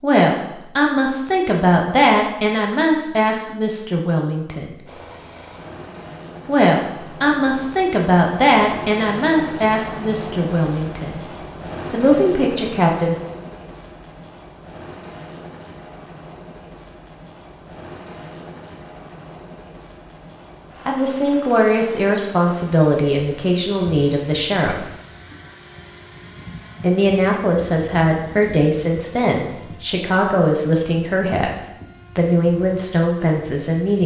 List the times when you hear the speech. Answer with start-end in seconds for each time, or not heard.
0.0-4.8, 6.5-11.3, 11.9-13.2, 20.9-24.8, 26.8-34.0.